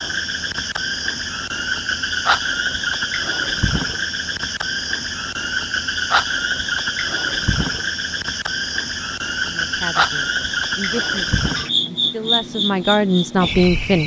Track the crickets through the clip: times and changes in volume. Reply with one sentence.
You can hear the crickets from 0.0 to 14.0 s, at a steady volume.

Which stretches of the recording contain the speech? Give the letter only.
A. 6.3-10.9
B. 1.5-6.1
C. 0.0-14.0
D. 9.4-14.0
D.